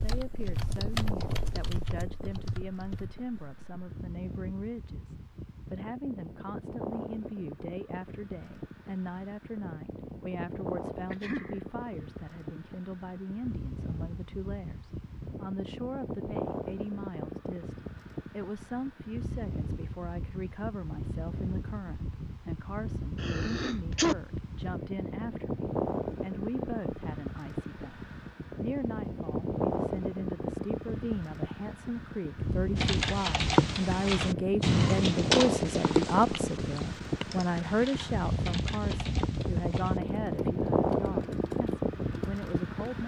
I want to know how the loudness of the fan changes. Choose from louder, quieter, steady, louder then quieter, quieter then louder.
louder.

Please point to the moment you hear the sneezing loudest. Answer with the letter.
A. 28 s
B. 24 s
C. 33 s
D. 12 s
B.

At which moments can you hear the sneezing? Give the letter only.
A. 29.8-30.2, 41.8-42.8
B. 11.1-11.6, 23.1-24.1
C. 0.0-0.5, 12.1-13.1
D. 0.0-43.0
B.